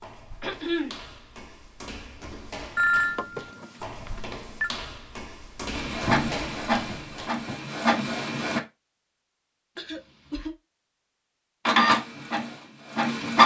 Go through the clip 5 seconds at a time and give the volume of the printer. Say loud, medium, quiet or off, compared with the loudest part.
off, medium, loud.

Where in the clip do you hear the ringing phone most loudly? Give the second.
3 s.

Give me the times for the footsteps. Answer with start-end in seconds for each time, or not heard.
0.0-7.3.